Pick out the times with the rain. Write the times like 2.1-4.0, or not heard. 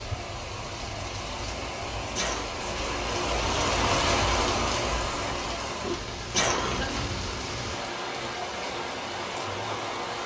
0.0-10.2.